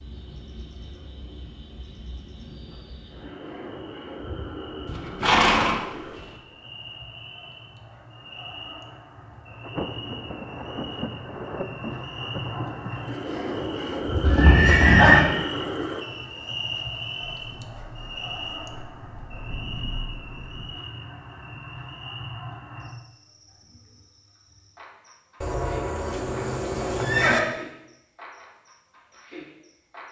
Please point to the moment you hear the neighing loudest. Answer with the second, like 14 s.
15 s.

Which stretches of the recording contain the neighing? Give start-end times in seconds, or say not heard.
4.8-6.2, 14.2-15.3, 25.4-27.4.